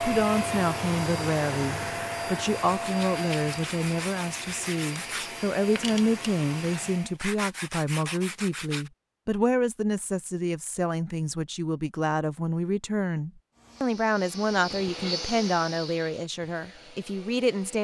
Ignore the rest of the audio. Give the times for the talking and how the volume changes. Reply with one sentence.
You can hear the talking from 0.0 to 17.8 s, at a steady volume.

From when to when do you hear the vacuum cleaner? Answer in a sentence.
You can hear the vacuum cleaner from 0.0 to 7.2 s and from 13.5 to 17.8 s.